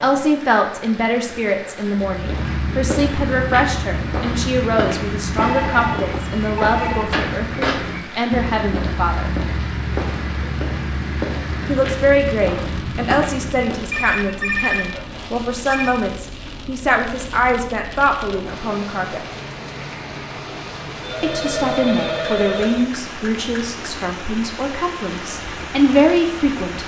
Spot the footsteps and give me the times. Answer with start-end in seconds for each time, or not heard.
1.9-13.9.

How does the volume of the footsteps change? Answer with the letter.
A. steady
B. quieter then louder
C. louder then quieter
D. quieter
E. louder
A.